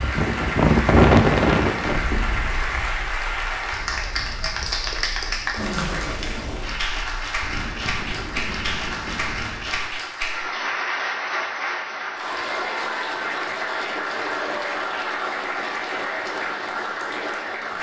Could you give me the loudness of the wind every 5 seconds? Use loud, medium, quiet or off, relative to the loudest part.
loud, quiet, off, off.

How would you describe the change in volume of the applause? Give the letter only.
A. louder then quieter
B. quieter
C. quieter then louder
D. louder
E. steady
E.